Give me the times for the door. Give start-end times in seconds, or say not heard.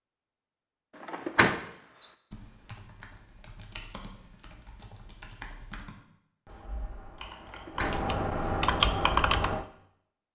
1.0-2.0, 7.4-8.4.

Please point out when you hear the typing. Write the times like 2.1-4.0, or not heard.
2.3-9.7.